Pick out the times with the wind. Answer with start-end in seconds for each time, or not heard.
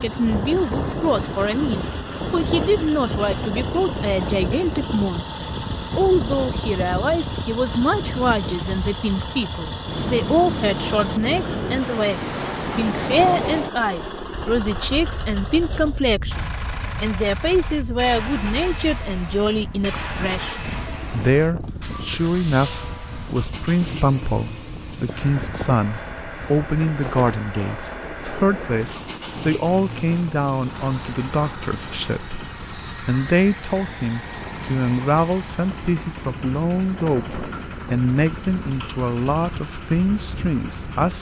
0.0-41.1.